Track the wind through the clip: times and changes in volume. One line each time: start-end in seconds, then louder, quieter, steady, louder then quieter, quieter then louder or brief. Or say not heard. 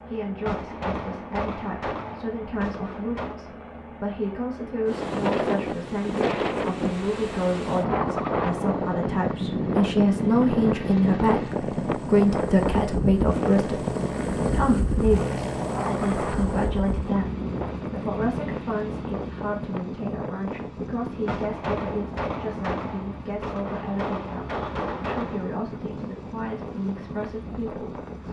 4.8-28.2 quieter.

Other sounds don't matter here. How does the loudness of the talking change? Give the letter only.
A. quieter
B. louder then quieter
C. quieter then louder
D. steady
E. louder
B.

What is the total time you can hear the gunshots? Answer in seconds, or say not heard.
7 s.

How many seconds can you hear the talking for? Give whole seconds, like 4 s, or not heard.
28 s.